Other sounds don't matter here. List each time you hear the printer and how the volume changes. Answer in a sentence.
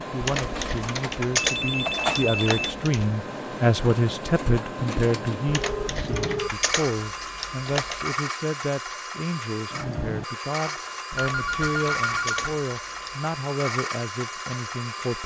The printer can be heard from 0.0 to 15.2 s, at a steady volume.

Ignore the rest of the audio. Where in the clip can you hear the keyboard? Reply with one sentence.
You can hear the keyboard from 0.2 to 3.1 s, from 5.5 to 8.2 s and from 11.1 to 13.2 s.